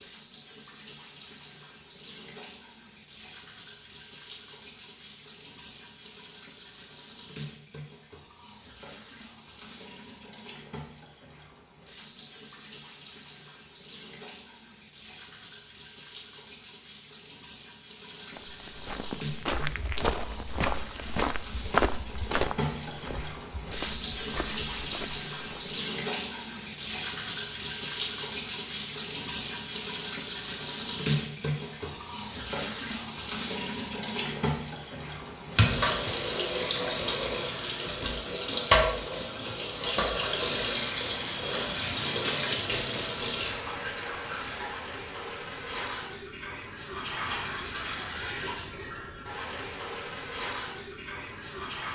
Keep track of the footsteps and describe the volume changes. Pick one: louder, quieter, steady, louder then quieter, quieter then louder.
louder then quieter.